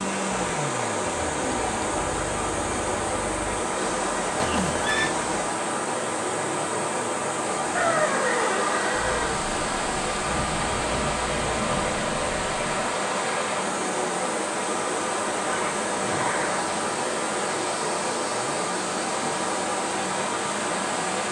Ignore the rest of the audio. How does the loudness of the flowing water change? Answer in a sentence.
The volume of the flowing water stays about the same.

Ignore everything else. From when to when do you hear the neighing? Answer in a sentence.
The neighing can be heard from 4.4 to 5.1 s, from 7.8 to 9.3 s and from 15.4 to 16.8 s.